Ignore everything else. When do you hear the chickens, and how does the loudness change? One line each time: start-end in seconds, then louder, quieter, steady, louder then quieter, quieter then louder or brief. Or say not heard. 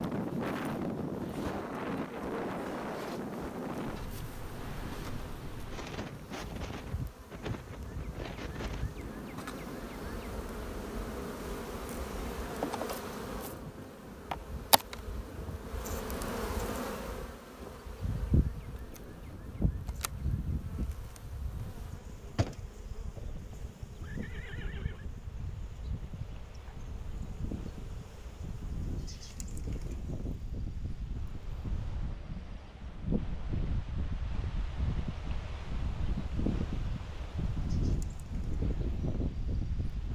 not heard.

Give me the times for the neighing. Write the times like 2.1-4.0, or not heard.
23.1-25.1.